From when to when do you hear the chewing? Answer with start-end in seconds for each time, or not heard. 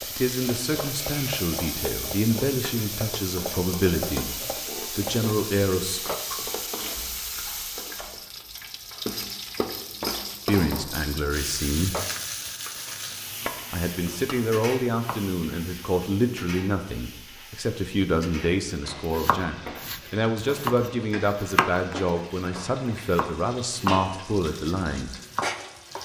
6.3-8.1.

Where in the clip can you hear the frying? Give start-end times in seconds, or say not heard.
0.0-25.9.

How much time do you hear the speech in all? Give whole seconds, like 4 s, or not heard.
19 s.